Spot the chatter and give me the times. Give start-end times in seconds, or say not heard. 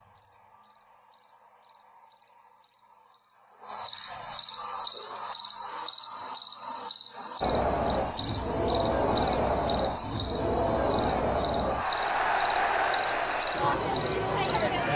7.4-14.9.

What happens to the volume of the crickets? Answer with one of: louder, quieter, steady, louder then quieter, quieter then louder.
louder.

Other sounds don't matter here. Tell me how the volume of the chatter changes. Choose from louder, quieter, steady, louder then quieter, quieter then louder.
steady.